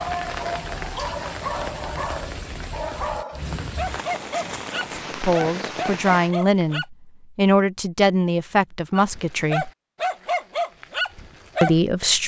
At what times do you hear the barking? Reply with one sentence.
The barking can be heard from 0.0 to 6.8 s and from 8.9 to 12.2 s.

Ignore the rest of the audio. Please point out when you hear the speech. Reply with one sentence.
The speech can be heard from 5.2 to 9.7 s and from 11.6 to 12.2 s.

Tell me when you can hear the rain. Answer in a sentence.
You can hear the rain from 0.0 to 6.3 s.